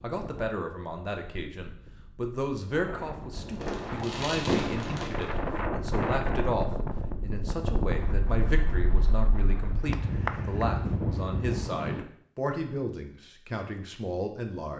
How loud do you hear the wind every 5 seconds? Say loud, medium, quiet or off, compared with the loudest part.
medium, loud, loud.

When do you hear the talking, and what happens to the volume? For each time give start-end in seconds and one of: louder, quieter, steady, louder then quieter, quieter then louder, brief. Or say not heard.
0.0-14.7 steady.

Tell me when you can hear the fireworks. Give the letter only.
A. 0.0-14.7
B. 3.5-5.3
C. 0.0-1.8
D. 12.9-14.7
B.